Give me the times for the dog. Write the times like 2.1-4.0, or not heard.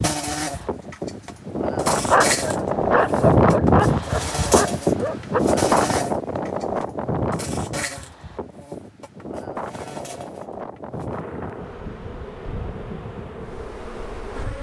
1.9-5.4.